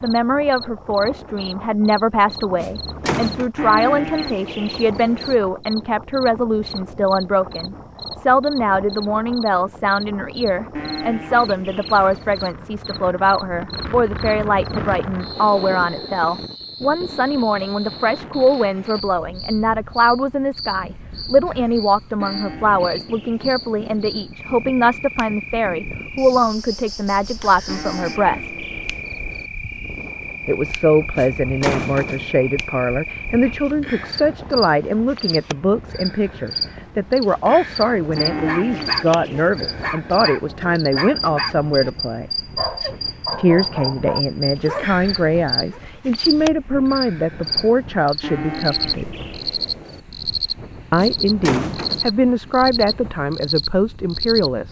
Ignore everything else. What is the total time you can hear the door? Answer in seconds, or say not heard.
3 s.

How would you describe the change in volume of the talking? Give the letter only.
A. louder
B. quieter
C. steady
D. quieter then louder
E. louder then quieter
C.